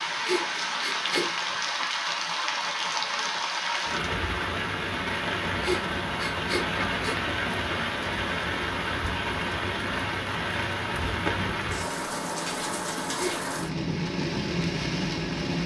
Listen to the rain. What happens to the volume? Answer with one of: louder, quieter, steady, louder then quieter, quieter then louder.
steady.